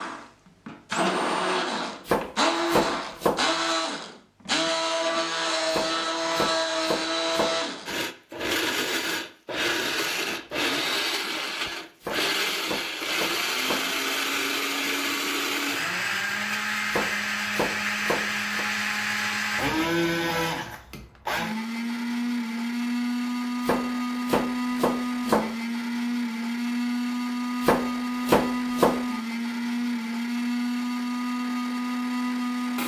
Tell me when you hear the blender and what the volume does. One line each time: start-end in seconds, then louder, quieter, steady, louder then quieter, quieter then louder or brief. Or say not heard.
0.0-32.8 steady.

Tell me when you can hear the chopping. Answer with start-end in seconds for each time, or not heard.
2.0-3.5, 5.7-7.6, 12.0-13.9, 16.9-18.6, 23.6-25.5, 27.6-29.1.